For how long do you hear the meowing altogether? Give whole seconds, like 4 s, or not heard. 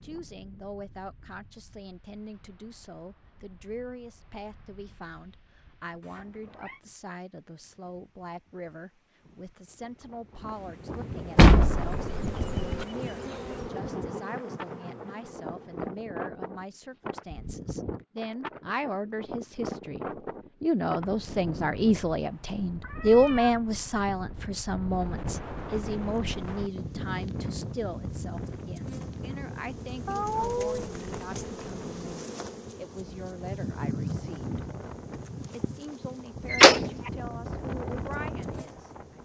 2 s.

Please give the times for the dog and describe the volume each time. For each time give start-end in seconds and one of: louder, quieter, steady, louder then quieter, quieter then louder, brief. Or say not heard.
not heard.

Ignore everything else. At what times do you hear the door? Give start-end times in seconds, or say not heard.
11.3-12.8, 36.5-37.1.